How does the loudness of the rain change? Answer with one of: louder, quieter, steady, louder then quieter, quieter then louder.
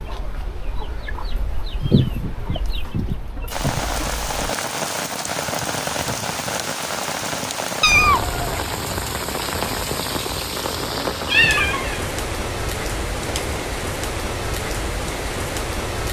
steady.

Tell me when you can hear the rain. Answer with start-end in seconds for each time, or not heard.
3.5-16.0.